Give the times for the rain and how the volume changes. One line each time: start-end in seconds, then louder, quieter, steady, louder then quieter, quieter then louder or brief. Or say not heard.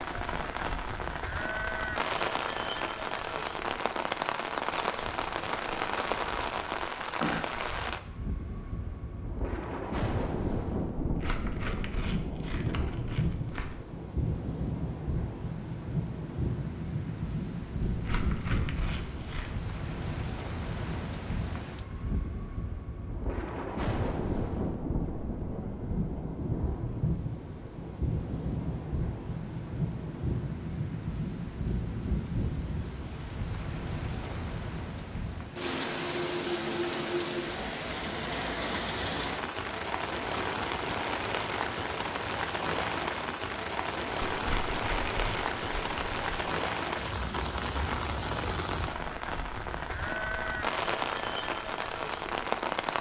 0.0-52.9 steady.